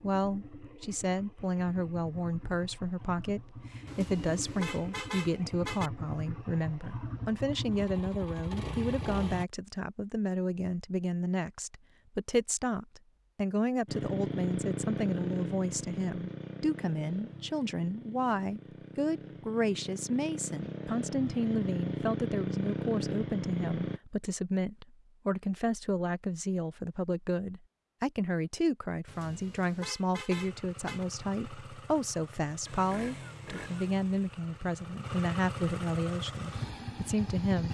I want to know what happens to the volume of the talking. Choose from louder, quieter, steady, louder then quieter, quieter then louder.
steady.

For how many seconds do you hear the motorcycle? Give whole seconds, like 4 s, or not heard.
27 s.